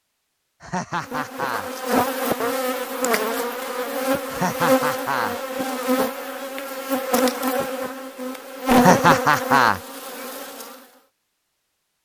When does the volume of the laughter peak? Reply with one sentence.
The loudest moment of the laughter is at 9 seconds.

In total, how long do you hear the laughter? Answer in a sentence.
The laughter can be heard for 3 seconds in total.